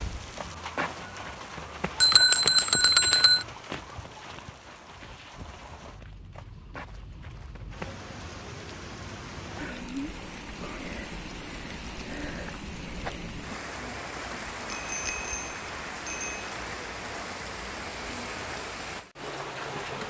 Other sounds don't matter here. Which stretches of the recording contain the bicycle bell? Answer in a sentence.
You can hear the bicycle bell from 2.0 to 3.5 s and from 14.7 to 16.4 s.